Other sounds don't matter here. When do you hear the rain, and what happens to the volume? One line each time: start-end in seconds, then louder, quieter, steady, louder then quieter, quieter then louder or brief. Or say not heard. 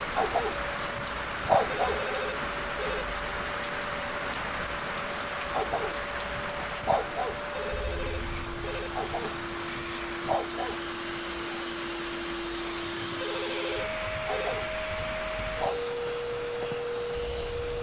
0.0-17.7 quieter.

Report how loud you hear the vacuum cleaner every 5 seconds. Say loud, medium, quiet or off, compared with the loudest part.
medium, medium, loud, loud.